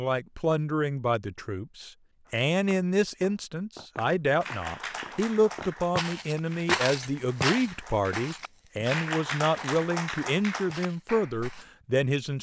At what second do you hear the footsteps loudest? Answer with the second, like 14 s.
7 s.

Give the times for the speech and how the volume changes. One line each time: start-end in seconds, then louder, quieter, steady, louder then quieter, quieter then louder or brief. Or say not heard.
0.0-12.3 steady.